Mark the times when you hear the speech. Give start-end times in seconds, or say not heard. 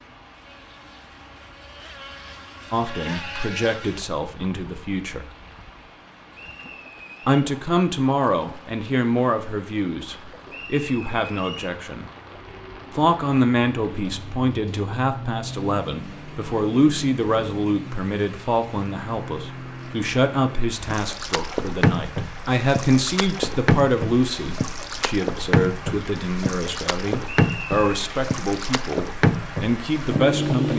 2.7-5.3, 7.2-12.1, 12.9-30.7.